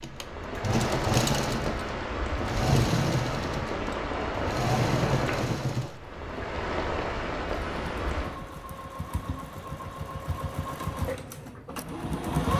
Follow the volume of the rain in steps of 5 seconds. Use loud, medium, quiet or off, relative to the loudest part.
loud, loud, quiet.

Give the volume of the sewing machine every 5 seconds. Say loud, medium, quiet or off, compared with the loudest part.
loud, medium, loud.